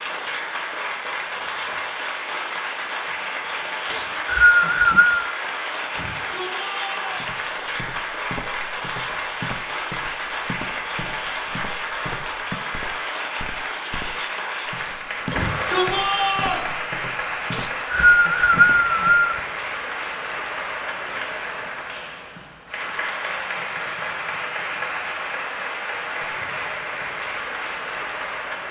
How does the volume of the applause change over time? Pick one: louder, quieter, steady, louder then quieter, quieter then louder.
steady.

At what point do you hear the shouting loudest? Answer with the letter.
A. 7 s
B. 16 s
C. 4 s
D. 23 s
B.